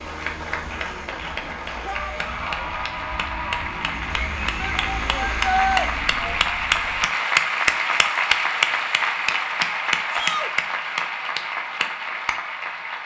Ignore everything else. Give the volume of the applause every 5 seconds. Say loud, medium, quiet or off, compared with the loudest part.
medium, loud, medium.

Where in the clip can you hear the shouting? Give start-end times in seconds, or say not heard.
1.8-2.6, 4.6-5.8, 10.1-10.5.